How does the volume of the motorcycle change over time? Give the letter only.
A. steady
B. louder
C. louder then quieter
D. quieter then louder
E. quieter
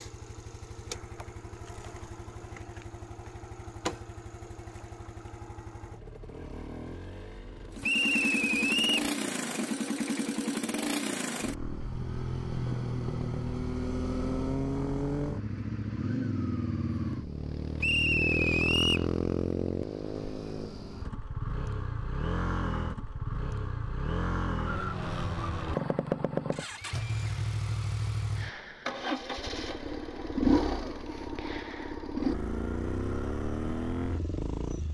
B.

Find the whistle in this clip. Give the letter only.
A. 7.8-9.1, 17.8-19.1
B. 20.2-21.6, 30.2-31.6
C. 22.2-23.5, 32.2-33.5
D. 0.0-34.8
A.